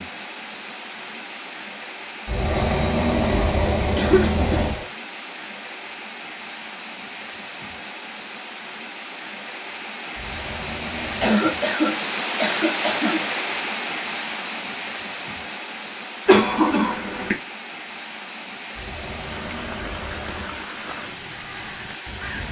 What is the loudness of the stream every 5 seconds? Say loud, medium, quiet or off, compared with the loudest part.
medium, medium, loud, medium, medium.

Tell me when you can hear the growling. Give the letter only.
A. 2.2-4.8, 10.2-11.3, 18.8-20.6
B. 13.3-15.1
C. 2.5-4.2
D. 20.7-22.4
A.